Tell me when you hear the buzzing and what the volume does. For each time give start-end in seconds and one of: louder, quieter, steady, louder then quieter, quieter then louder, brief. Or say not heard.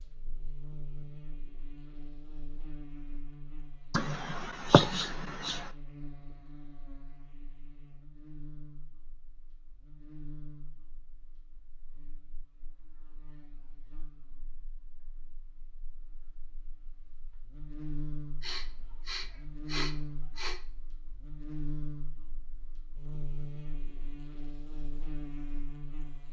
0.0-26.2 quieter then louder.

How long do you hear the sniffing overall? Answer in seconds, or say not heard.
4 s.